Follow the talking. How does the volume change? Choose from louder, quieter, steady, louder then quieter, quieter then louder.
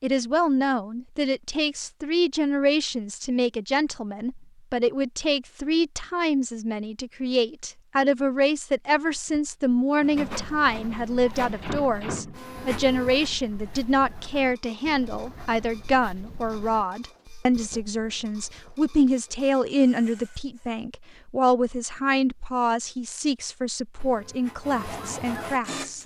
steady.